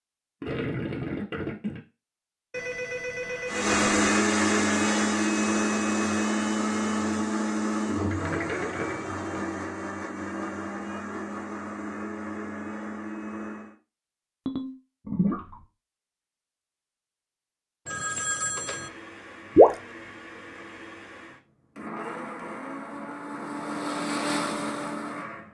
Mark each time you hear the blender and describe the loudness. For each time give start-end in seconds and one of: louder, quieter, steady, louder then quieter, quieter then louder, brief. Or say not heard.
3.5-13.8 quieter
18.6-25.4 louder.